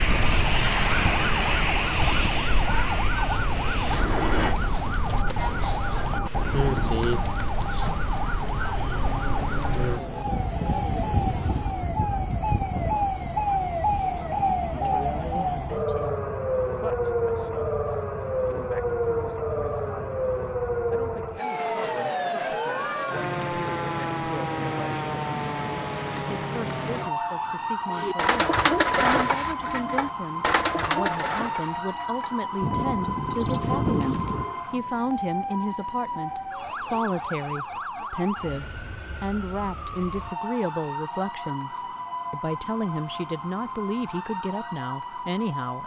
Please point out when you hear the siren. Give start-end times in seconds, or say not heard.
0.0-45.8.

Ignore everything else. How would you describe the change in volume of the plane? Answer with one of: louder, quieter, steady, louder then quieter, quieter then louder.
quieter.